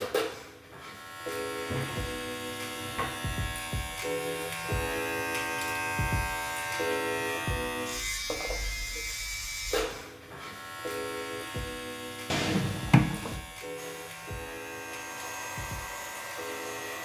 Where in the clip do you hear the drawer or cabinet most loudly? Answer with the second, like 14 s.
13 s.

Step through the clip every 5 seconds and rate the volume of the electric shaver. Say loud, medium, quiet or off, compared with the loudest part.
loud, loud, medium, medium.